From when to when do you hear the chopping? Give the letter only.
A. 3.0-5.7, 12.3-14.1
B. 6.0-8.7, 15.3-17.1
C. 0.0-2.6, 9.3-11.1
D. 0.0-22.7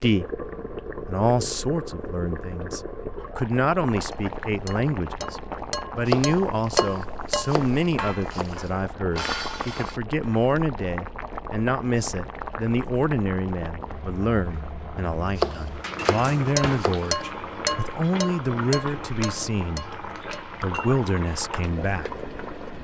B.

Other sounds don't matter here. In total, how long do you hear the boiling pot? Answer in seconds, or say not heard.
23 s.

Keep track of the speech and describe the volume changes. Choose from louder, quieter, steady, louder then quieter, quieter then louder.
steady.